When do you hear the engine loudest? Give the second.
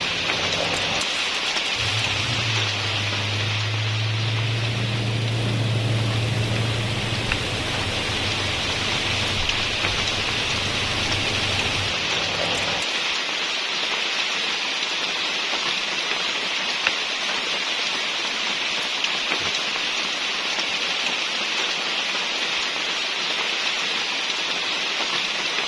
6 s.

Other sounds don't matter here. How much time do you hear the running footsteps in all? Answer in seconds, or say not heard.
not heard.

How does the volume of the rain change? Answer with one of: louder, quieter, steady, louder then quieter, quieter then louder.
steady.